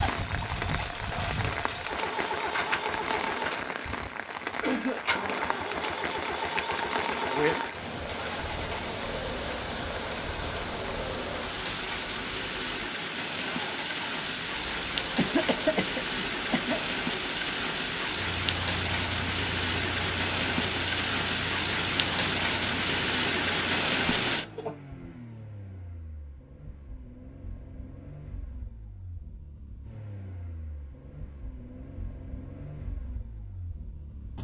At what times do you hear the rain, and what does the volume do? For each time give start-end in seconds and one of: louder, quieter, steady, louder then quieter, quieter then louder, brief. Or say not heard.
0.0-24.4 louder.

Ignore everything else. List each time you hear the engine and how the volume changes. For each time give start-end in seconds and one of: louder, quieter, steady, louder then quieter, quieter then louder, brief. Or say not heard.
0.0-34.3 quieter.